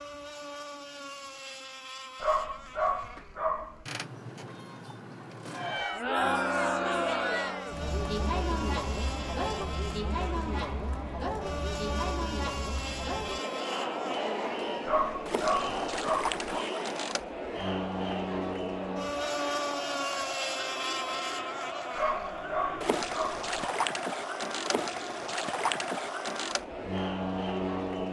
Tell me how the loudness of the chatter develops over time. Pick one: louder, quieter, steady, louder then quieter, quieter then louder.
quieter.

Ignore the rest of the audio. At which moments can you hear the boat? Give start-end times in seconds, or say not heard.
0.0-28.0.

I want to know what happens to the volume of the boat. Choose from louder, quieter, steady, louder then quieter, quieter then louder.
louder.